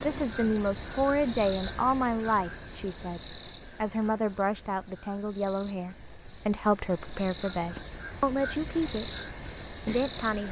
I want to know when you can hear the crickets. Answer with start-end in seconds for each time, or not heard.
0.0-10.4.